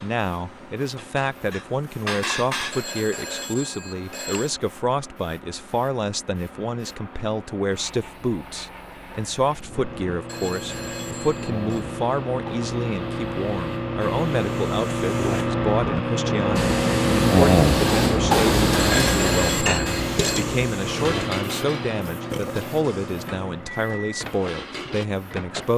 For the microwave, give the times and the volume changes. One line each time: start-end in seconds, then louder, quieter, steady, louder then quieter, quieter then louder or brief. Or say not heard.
9.7-25.7 louder then quieter.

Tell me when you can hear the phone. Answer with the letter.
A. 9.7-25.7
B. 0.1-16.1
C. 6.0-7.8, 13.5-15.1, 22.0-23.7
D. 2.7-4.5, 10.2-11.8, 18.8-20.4
D.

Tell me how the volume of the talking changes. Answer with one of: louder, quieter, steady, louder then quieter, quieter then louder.
steady.